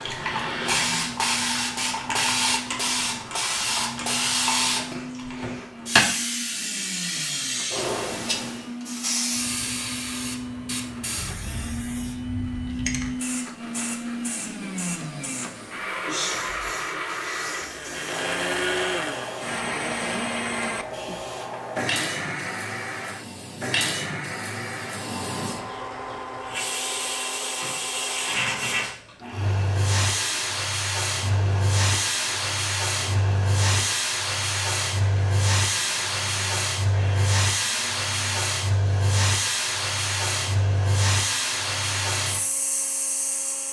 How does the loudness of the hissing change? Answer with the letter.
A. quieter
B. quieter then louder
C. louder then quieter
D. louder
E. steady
B.